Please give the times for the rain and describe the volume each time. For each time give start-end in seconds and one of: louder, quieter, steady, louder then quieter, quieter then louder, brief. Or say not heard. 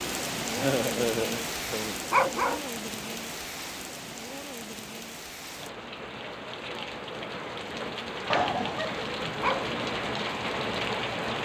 0.0-11.4 quieter then louder.